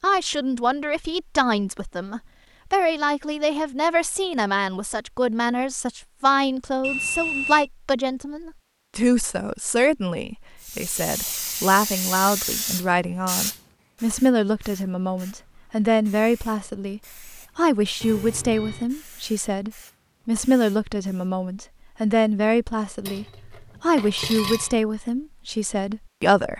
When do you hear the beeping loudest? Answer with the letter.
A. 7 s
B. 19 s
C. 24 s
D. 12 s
A.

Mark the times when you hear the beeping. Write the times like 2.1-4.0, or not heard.
6.8-7.7, 18.0-18.9.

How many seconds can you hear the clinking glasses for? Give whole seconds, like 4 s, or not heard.
2 s.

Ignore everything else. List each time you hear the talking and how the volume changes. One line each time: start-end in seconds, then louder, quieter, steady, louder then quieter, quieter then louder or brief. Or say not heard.
0.0-26.5 steady.